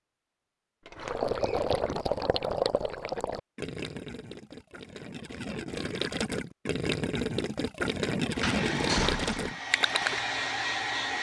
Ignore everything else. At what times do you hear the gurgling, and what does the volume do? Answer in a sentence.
The gurgling can be heard from 0.9 to 10.2 s, getting quieter then louder.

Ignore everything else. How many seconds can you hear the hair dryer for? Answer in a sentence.
The hair dryer can be heard for 3 seconds in total.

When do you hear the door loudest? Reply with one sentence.
The loudest moment of the door is at 9 seconds.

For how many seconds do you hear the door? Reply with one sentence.
The door can be heard for 2 seconds in total.